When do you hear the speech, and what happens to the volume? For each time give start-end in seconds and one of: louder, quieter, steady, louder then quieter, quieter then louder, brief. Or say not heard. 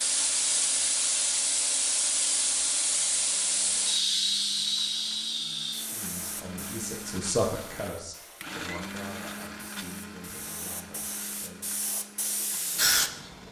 5.8-11.7 louder then quieter.